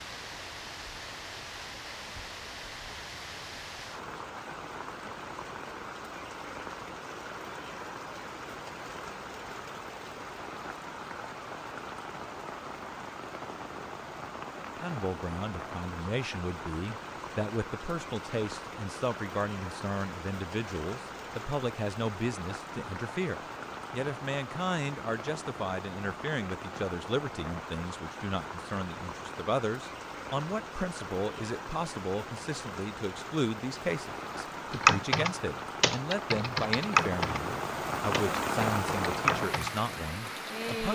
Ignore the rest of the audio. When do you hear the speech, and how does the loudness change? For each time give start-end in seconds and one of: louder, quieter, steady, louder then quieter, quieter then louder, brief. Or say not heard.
14.8-40.9 steady.